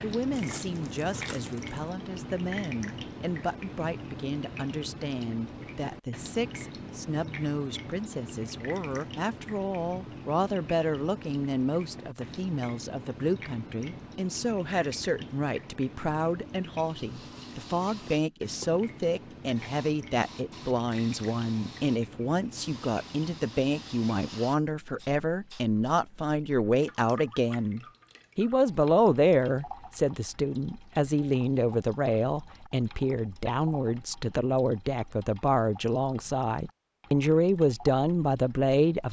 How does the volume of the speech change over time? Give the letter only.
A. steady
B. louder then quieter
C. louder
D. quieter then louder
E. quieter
C.